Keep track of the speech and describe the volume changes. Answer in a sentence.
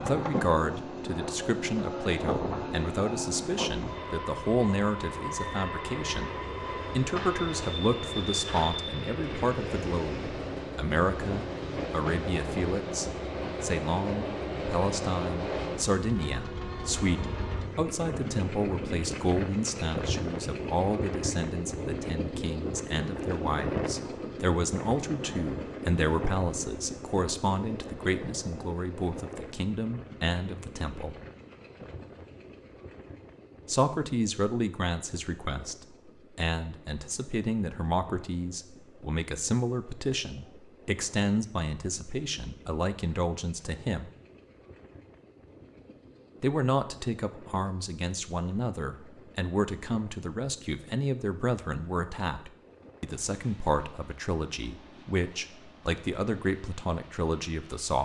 The volume of the speech stays about the same.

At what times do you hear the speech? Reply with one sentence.
The speech can be heard from 0.0 to 6.3 s, from 7.0 to 31.1 s, from 33.6 to 44.1 s and from 46.4 to 58.0 s.